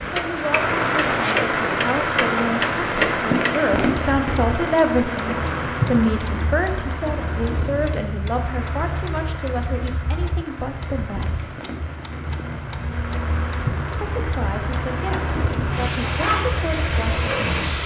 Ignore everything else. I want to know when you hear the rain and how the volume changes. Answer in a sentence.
The rain can be heard from 0.0 to 17.8 s, getting quieter then louder.